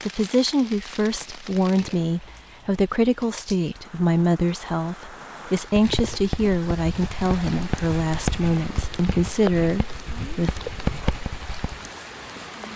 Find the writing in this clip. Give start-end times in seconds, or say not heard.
5.8-11.9.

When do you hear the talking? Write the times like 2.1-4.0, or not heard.
0.1-10.6.